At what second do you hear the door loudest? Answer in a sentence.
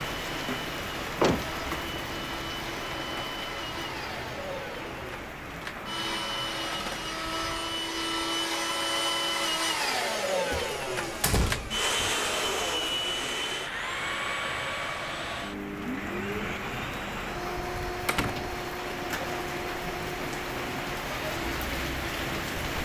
The loudest moment of the door is at 1 second.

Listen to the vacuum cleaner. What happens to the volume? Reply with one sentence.
The loudness of the vacuum cleaner goes up, then down.